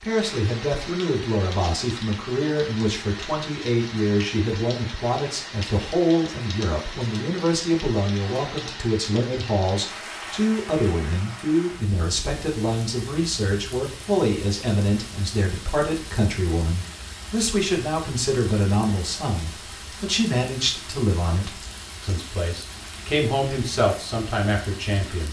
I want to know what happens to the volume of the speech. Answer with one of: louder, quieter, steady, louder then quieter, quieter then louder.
steady.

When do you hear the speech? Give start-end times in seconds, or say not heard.
0.0-25.2.